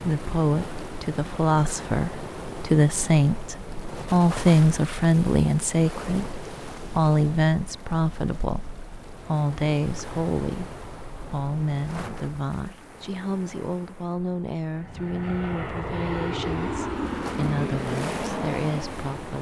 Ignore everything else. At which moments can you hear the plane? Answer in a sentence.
The plane can be heard from 14.7 to 19.3 s.